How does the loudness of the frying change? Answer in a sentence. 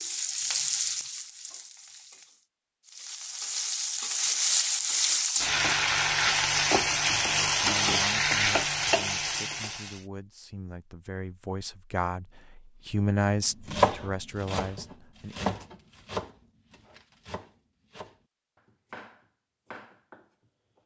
The volume of the frying goes up.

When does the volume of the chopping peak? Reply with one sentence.
The loudest moment of the chopping is at 14 seconds.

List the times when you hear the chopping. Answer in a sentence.
The chopping can be heard from 13.7 to 20.2 s.